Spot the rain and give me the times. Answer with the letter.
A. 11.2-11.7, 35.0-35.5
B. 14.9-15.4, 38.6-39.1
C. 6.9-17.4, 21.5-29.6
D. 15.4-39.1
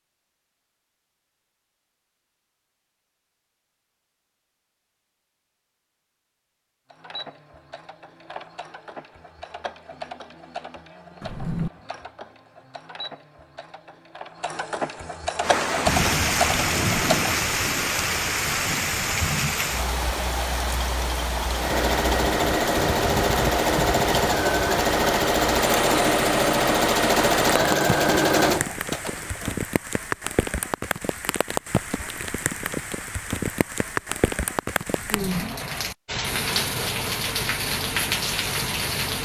D.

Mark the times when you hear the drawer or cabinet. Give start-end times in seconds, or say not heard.
11.2-11.7, 35.0-35.5.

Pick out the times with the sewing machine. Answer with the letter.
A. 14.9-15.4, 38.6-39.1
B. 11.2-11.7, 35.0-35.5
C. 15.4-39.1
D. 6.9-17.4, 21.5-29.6
D.